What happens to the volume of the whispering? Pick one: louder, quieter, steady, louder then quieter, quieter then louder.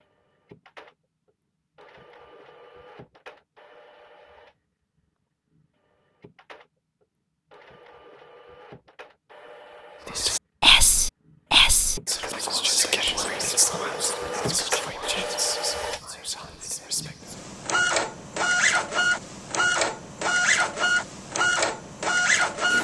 quieter.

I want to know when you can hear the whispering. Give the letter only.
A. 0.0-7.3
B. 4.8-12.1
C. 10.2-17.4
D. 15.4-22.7
C.